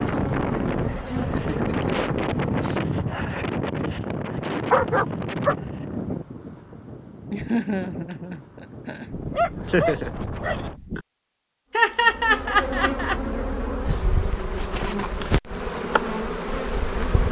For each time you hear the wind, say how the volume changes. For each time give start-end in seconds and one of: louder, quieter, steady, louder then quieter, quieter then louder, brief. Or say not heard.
0.0-10.8 quieter.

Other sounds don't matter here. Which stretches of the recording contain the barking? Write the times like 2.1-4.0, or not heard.
4.7-5.5, 9.1-11.1.